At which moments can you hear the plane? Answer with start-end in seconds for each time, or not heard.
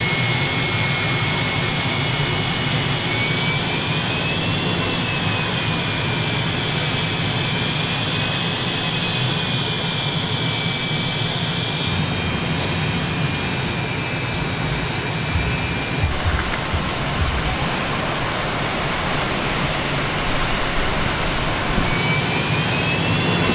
0.0-23.5.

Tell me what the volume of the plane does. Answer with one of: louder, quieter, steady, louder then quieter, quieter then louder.
steady.